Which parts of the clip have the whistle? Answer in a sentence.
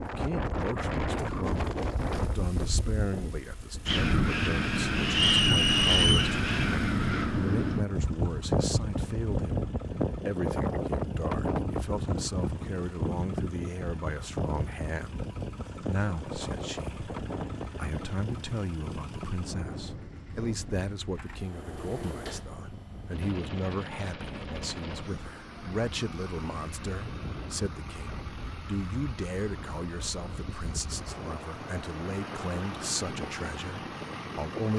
You can hear the whistle from 5.1 to 6.3 s.